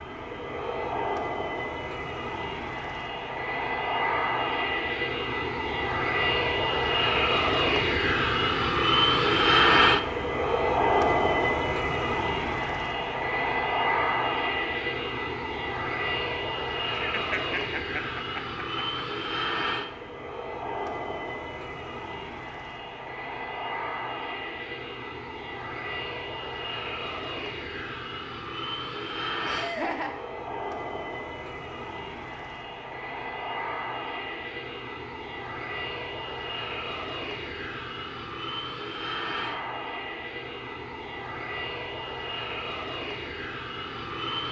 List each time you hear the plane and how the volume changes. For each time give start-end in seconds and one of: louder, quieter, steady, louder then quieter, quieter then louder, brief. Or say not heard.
0.0-44.4 quieter.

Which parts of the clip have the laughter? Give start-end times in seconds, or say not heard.
17.1-19.0, 29.4-30.1.